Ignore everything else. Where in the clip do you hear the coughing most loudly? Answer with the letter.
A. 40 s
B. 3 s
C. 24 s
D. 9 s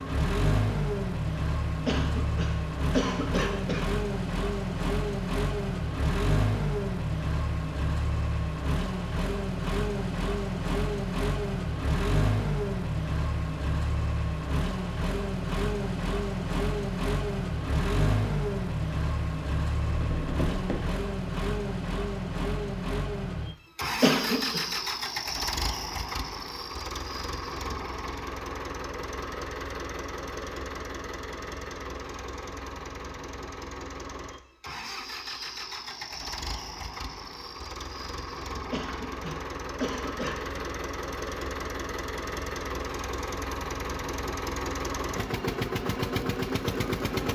C.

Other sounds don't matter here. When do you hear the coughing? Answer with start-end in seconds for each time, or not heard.
1.9-3.9, 24.0-24.6, 38.7-40.6.